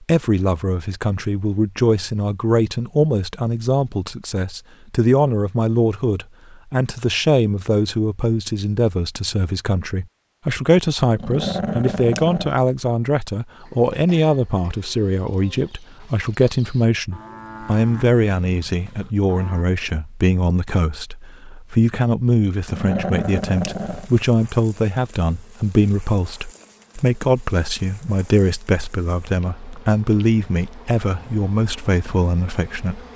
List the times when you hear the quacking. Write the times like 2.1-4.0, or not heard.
not heard.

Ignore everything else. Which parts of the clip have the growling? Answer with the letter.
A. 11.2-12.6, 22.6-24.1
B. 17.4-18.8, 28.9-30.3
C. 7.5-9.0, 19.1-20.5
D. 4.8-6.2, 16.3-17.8
A.